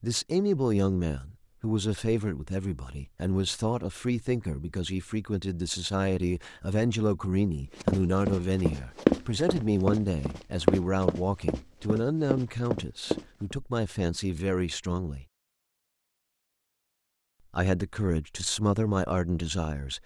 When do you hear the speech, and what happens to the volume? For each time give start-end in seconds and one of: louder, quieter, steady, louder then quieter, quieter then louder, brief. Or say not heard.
0.0-15.2 steady
17.5-20.0 brief.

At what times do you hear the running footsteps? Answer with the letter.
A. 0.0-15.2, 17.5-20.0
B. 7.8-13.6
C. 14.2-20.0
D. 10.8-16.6
B.